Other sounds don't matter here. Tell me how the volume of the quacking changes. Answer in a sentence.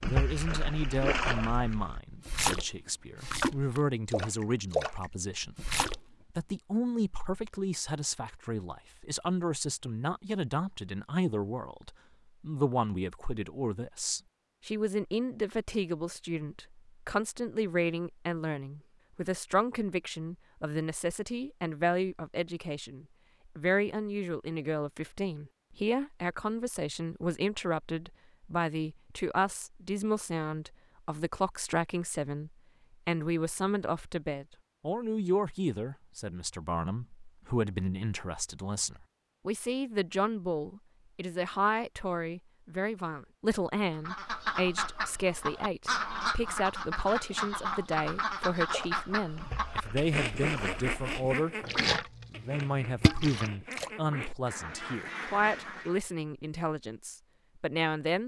The loudness of the quacking goes down.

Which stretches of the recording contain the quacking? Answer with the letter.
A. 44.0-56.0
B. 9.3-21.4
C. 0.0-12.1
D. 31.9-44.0
A.